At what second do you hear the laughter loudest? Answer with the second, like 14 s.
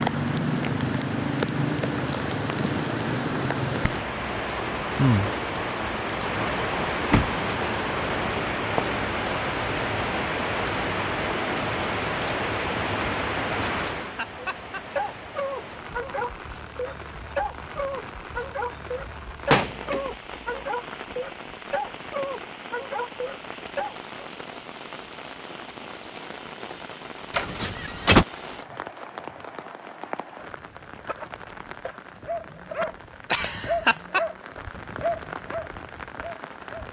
34 s.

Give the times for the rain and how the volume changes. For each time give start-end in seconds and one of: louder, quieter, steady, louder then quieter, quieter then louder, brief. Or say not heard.
0.0-36.8 quieter.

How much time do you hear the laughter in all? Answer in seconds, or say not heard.
3 s.